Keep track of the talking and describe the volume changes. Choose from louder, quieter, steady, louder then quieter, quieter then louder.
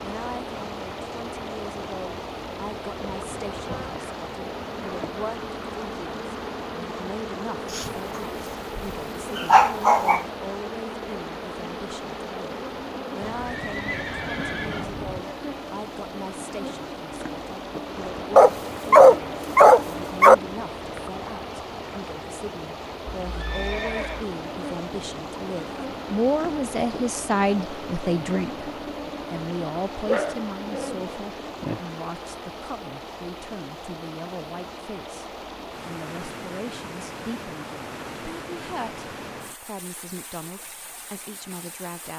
louder then quieter.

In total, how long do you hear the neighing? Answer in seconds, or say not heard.
3 s.